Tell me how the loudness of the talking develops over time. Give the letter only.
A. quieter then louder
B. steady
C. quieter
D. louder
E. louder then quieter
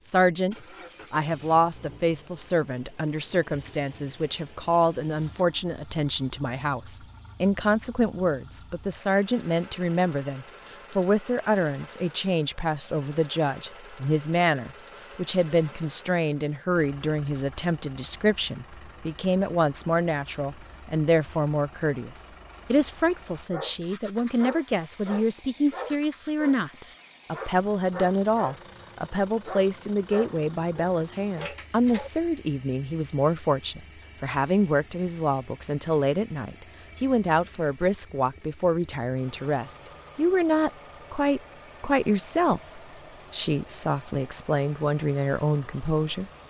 B.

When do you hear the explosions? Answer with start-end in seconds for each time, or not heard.
not heard.